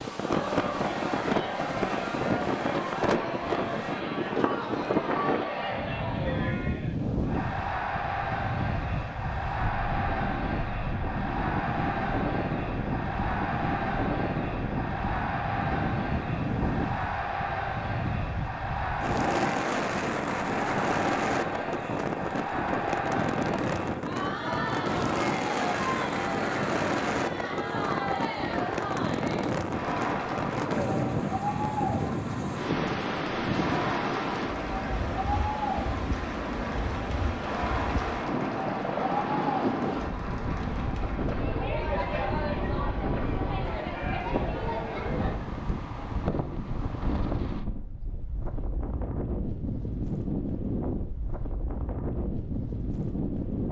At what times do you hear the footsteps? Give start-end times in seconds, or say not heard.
not heard.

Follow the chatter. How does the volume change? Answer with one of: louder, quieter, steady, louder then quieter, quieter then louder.
steady.